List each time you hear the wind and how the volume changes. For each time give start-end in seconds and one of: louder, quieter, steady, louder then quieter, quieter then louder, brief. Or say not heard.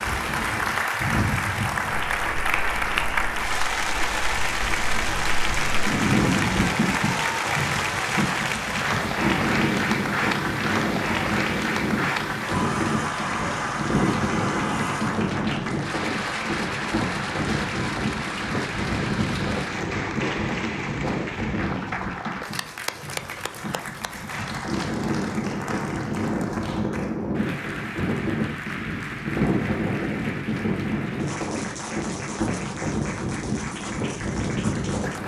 0.0-35.2 steady.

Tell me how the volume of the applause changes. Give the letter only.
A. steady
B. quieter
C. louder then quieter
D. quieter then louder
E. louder
B.